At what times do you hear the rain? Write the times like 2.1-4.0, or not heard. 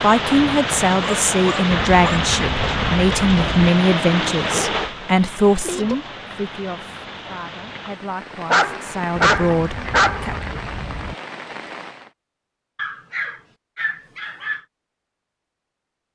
0.0-12.1.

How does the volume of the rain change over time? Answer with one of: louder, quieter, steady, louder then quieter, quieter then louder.
quieter.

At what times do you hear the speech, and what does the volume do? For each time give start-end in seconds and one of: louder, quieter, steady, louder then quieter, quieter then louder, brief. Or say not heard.
0.0-10.3 quieter then louder.